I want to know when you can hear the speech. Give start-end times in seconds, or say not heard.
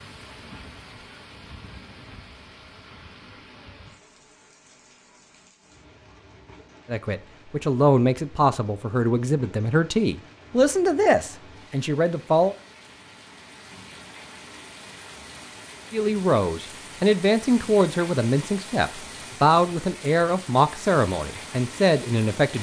6.9-12.6, 15.9-22.5.